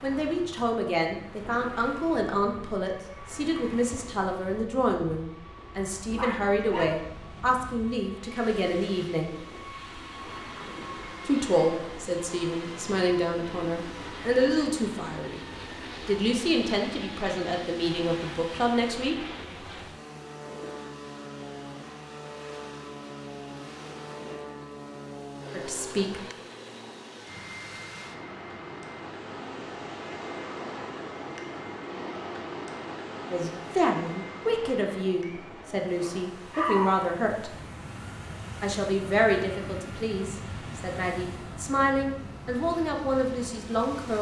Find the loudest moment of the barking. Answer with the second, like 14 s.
37 s.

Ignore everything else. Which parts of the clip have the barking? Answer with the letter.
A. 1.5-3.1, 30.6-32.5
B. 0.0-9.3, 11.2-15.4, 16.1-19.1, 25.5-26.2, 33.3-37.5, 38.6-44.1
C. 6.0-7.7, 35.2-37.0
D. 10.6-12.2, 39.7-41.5
C.